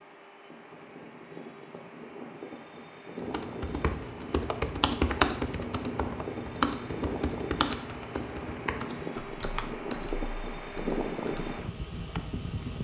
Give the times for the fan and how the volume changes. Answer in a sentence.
The fan can be heard from 0.0 to 12.7 s, getting louder.